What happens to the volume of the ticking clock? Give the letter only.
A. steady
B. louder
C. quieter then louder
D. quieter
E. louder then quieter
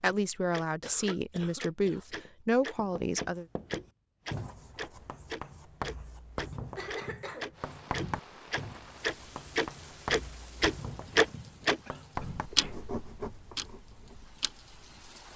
E.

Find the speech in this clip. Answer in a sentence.
The speech can be heard from 0.0 to 3.5 s.